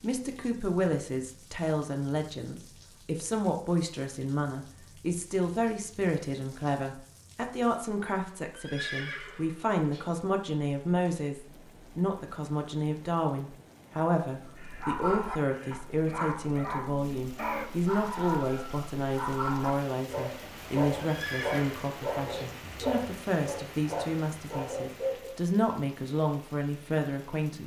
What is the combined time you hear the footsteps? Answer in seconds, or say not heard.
not heard.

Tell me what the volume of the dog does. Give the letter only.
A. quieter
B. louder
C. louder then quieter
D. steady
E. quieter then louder
D.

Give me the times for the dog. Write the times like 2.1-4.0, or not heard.
14.6-25.4.